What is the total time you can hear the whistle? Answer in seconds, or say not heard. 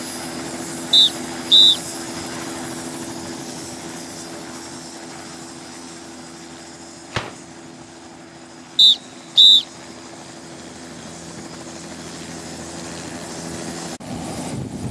2 s.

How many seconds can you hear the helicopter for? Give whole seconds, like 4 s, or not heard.
15 s.